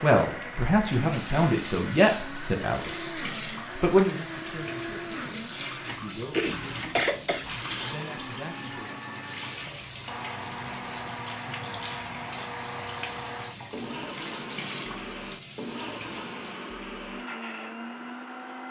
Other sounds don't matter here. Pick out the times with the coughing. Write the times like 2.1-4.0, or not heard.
6.3-8.0.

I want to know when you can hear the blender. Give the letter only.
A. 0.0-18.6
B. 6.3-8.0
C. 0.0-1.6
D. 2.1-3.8
A.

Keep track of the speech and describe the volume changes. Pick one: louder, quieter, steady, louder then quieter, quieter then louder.
quieter.